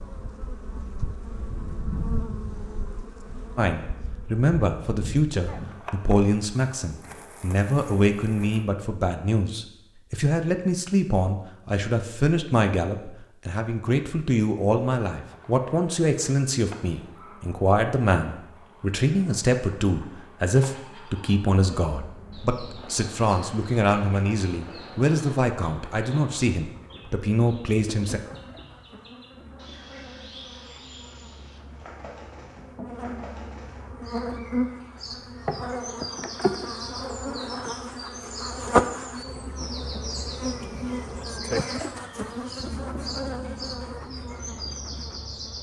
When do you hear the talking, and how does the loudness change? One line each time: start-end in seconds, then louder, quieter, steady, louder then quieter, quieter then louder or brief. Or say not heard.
3.5-28.2 steady.